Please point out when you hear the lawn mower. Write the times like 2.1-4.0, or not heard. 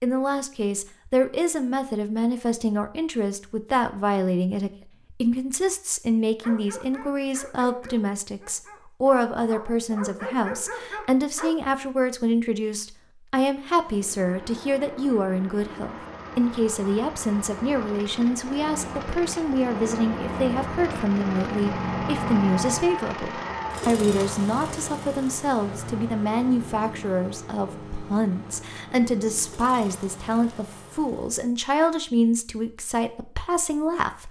13.8-31.4.